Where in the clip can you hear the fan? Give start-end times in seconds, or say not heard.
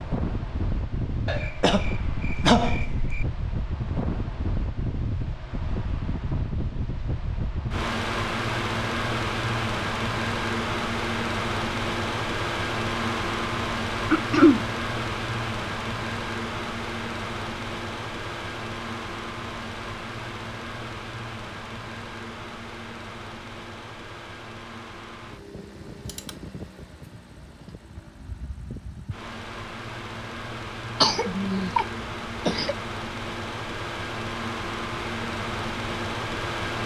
0.0-36.8.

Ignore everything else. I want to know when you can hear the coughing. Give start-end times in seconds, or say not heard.
1.2-3.2, 14.1-14.7, 31.0-32.8.